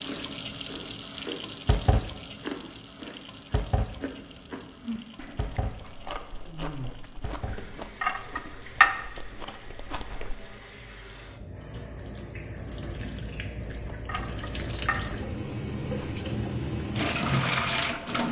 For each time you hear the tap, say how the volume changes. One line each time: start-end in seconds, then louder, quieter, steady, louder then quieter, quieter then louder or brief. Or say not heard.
0.0-18.2 quieter then louder.